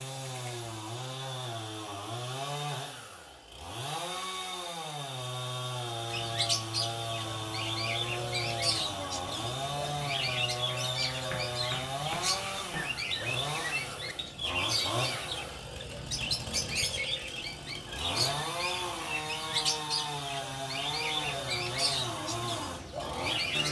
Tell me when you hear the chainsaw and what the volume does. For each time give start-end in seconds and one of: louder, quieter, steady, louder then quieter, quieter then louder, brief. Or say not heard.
0.0-23.6 steady.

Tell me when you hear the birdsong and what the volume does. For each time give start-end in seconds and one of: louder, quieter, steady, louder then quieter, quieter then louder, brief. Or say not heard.
6.1-23.6 steady.